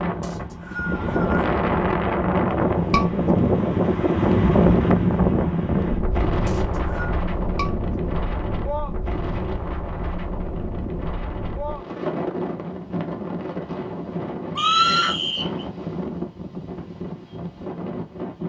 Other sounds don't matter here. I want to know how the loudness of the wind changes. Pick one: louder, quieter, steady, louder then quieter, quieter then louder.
quieter.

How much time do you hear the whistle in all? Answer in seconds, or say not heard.
3 s.